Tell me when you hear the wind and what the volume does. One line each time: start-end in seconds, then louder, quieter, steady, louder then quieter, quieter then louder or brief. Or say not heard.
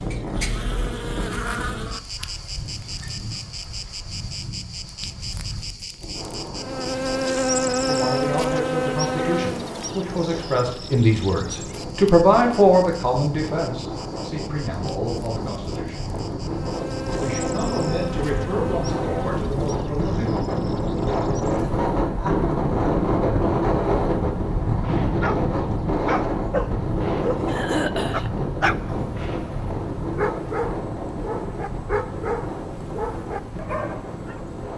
0.0-34.7 louder then quieter.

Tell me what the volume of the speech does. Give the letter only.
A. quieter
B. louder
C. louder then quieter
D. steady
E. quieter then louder
C.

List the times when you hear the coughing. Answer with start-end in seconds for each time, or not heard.
27.4-28.3.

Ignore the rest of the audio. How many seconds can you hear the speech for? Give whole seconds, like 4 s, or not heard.
11 s.